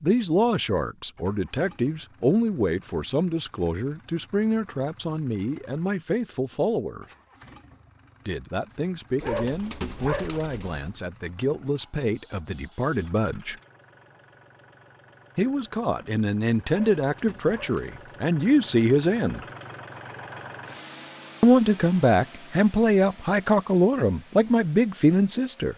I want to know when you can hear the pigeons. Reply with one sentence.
The pigeons can be heard from 9.2 to 10.9 s and from 16.6 to 18.1 s.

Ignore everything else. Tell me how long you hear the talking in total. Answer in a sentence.
You can hear the talking for 21 seconds altogether.